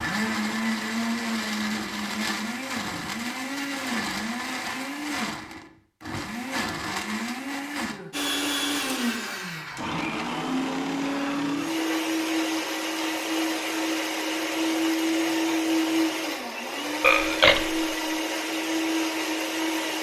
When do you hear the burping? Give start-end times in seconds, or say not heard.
17.0-17.9.